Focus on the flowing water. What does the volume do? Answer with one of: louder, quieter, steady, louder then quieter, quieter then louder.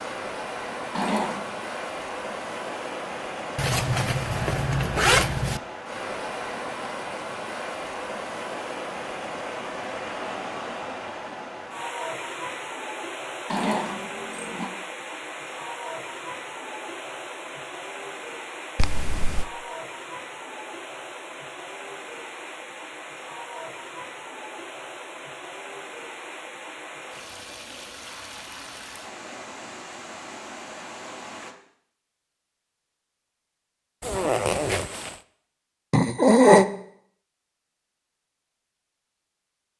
quieter.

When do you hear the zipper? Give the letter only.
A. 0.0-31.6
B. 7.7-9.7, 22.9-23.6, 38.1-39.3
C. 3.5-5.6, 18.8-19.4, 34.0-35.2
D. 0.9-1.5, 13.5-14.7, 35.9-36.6
C.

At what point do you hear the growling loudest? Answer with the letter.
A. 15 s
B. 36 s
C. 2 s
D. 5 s
B.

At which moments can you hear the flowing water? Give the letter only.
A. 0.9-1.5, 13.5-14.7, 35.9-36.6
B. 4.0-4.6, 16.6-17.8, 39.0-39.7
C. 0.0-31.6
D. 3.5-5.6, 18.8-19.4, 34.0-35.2
C.